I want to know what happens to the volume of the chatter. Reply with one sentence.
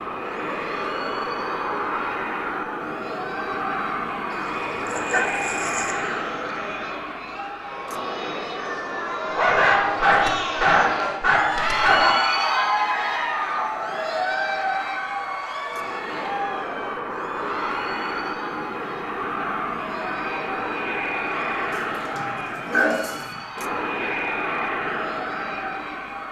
The volume of the chatter goes up, then down.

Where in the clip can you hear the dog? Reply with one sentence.
The dog can be heard from 4.3 to 6.0 s, from 9.2 to 12.2 s and from 21.7 to 23.4 s.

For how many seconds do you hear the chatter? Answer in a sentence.
The chatter can be heard for 26 seconds in total.